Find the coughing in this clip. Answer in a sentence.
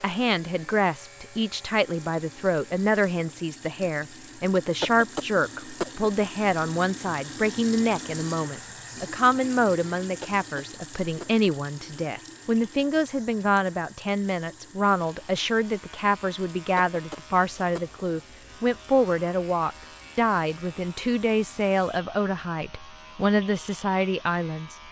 The coughing can be heard from 4.8 to 6.0 s, from 10.2 to 11.4 s and from 16.8 to 18.0 s.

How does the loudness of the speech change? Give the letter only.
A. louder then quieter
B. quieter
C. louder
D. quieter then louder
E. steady
E.